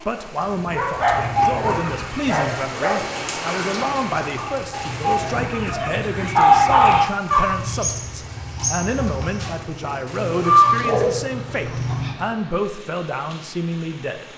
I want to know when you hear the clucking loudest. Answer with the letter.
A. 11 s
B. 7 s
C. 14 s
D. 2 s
A.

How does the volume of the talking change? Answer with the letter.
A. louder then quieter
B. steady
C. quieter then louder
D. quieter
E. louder
B.